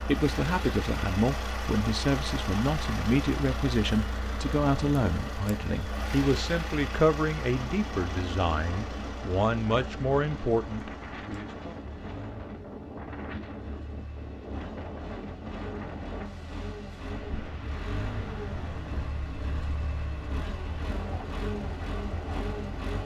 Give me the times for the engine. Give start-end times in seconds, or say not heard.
0.0-23.0.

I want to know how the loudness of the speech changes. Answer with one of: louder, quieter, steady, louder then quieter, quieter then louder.
steady.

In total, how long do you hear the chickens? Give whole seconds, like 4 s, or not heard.
not heard.